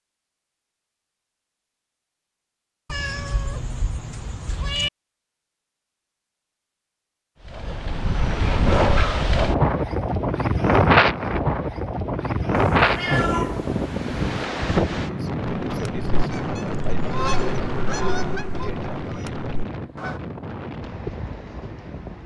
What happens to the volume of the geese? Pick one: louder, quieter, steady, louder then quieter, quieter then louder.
louder then quieter.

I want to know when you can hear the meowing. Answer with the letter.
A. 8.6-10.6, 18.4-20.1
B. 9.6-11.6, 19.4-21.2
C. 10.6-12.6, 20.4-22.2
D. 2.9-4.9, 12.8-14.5
D.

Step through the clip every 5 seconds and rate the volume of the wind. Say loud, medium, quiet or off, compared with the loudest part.
off, loud, loud, medium, quiet.